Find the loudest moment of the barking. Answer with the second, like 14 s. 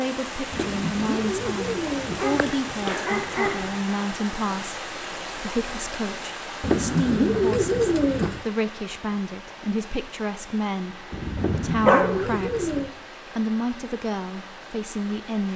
12 s.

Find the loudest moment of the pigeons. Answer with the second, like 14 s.
7 s.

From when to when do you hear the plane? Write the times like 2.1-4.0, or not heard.
not heard.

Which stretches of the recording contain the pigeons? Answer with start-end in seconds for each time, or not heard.
0.5-2.5, 6.6-8.4, 11.3-12.9.